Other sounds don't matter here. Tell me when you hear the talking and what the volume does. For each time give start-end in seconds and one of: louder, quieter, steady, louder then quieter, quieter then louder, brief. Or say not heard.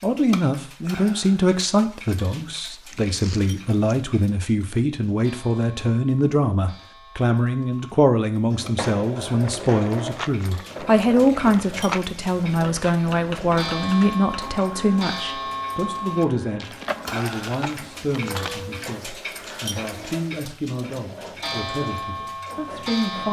0.0-23.2 quieter.